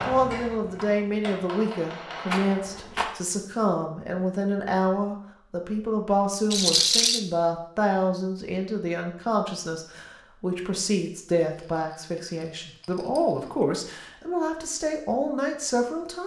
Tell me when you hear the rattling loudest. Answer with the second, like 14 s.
7 s.